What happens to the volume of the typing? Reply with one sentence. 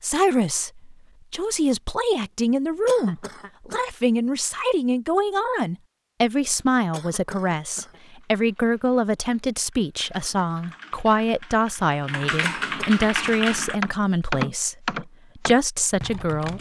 The loudness of the typing goes up.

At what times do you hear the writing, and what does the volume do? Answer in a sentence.
You can't hear the writing here.